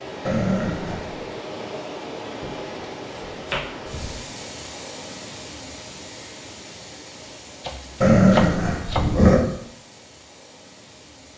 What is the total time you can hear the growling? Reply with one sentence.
The growling can be heard for 2 seconds in total.